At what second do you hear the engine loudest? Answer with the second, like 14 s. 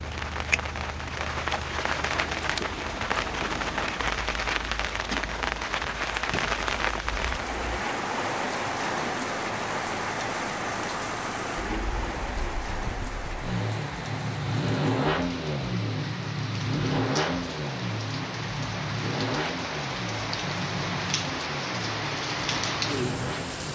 15 s.